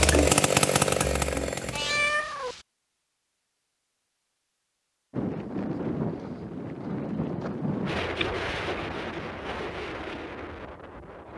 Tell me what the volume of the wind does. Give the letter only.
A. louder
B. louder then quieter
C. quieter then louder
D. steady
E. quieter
E.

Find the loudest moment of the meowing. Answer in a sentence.
The loudest moment of the meowing is at 2 seconds.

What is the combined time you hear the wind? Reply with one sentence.
The wind can be heard for 6 seconds in total.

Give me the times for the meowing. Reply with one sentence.
You can hear the meowing from 1.7 to 2.6 s and from 8.2 to 9.7 s.